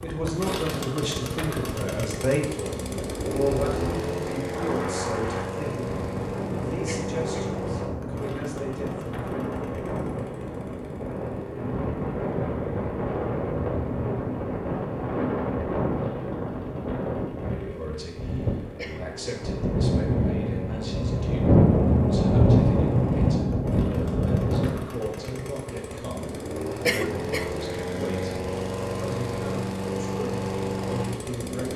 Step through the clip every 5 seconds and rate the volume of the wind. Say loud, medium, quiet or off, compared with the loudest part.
quiet, medium, medium, medium, loud, off, off.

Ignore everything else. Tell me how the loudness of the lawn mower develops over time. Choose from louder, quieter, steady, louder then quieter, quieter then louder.
quieter then louder.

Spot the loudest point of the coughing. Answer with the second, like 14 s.
27 s.